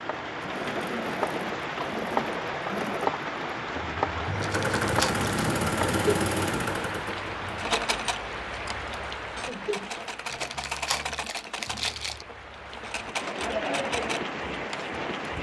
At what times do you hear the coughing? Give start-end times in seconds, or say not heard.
not heard.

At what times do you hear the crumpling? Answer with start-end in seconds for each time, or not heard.
4.4-5.2, 10.3-12.2.